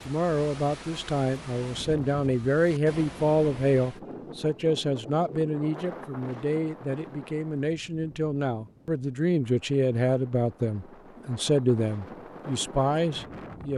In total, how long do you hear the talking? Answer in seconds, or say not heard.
14 s.